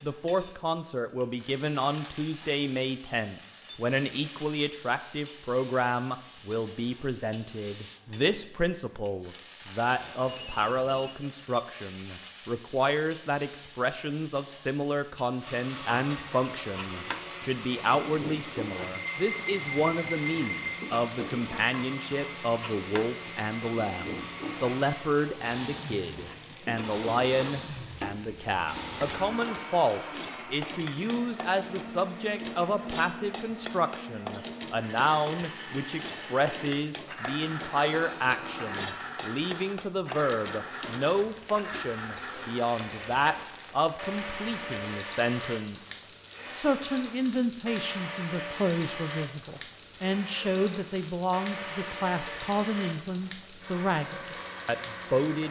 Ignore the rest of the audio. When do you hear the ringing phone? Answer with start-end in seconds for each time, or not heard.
9.8-11.2, 18.9-20.8, 37.6-39.0.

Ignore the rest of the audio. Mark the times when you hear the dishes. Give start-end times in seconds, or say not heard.
not heard.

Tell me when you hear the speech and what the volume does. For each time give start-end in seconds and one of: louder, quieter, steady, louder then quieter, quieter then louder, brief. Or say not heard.
0.0-55.4 steady.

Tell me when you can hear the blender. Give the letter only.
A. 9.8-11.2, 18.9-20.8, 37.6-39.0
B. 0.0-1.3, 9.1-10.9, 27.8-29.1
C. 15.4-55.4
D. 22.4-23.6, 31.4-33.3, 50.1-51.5
C.